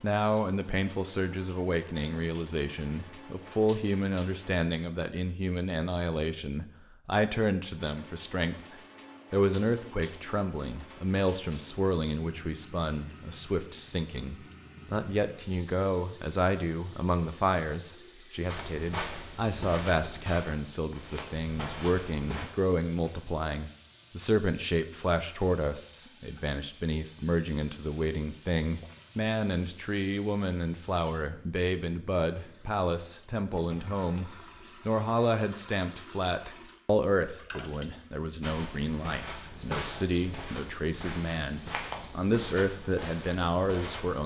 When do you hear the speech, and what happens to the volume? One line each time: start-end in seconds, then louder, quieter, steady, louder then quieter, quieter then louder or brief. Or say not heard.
0.0-44.2 steady.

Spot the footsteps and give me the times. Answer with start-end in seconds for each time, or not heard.
18.4-22.4, 38.4-44.2.